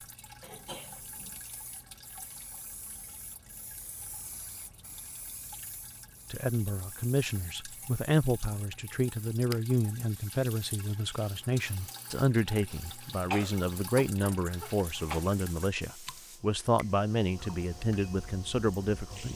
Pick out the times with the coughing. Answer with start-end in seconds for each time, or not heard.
0.4-1.4, 13.3-15.2.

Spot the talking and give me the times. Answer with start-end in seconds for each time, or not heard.
6.3-19.3.